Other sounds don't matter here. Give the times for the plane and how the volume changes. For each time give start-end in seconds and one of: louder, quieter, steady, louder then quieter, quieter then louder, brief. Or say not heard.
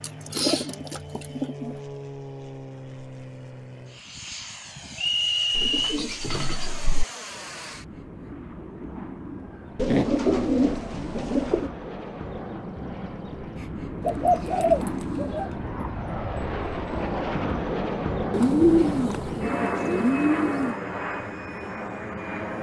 0.0-22.5 louder.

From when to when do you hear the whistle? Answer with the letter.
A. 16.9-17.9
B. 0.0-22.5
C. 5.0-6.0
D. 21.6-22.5
C.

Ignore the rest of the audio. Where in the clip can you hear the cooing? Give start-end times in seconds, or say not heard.
0.0-1.8, 5.5-7.0, 9.8-11.7, 14.1-15.5, 18.3-20.8.